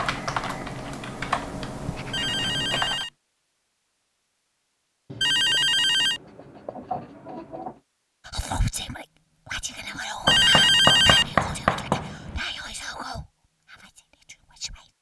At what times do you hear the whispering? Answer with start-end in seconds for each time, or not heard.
8.2-14.9.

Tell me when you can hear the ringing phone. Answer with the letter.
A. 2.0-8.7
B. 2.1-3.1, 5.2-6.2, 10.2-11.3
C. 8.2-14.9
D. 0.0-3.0
B.